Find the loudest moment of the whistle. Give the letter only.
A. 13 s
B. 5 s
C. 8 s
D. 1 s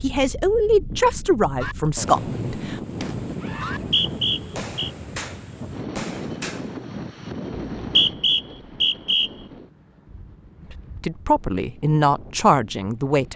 C.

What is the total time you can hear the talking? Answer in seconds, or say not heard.
5 s.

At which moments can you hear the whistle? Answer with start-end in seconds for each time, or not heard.
3.7-4.9, 7.5-9.3.